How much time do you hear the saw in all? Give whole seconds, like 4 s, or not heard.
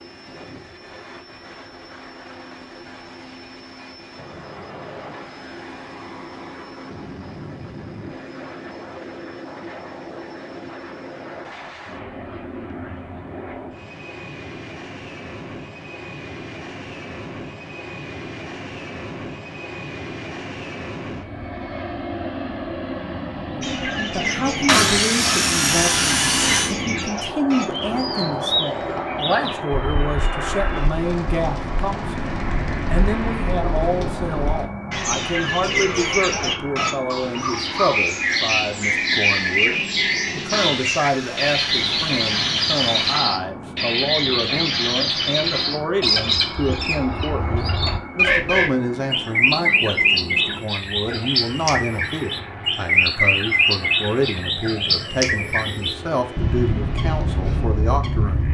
5 s.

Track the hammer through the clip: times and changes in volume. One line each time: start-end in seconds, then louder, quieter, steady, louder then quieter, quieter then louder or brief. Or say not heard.
not heard.